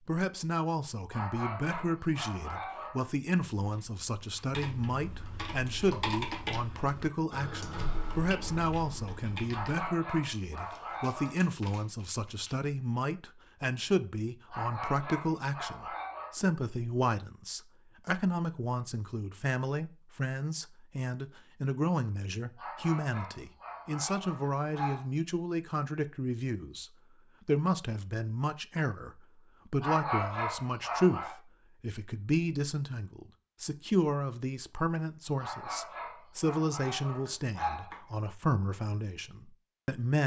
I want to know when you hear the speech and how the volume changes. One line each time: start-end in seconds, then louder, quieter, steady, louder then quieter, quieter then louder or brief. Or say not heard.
0.1-40.2 steady.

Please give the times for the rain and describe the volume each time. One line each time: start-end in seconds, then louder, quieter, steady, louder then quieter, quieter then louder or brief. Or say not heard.
not heard.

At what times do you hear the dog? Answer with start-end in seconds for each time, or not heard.
1.1-3.0, 9.4-11.4, 14.5-16.4, 22.6-25.1, 29.8-31.4, 35.4-38.1.